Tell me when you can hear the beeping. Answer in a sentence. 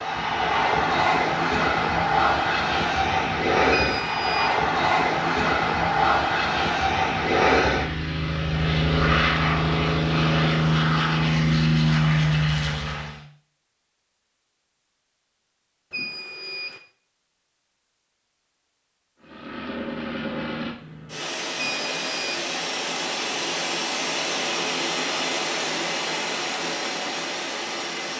The beeping can be heard from 3.7 to 4.5 s, from 15.9 to 16.8 s and from 21.6 to 22.4 s.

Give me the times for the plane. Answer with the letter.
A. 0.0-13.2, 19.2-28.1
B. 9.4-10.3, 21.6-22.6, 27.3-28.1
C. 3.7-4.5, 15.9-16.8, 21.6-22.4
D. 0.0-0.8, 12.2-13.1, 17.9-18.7
A.